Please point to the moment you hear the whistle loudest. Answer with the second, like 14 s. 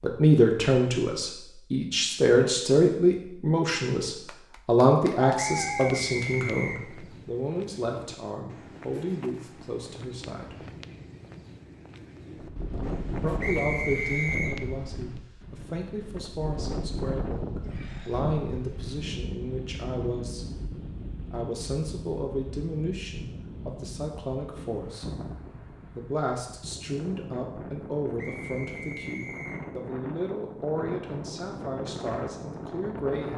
14 s.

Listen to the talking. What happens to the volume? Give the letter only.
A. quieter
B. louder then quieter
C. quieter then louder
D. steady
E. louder
A.